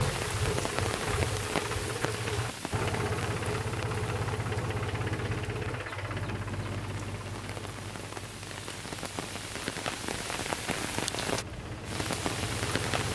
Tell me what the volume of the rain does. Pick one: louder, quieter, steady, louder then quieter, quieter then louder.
quieter then louder.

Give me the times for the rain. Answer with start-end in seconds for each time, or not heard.
0.0-13.0.